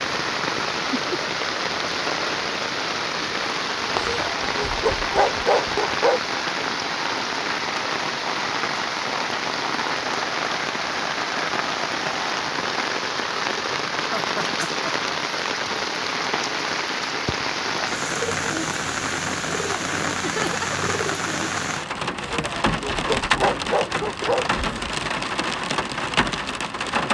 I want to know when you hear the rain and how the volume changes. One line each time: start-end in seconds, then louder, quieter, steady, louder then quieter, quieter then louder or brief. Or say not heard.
0.0-27.0 steady.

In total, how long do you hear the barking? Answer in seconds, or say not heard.
5 s.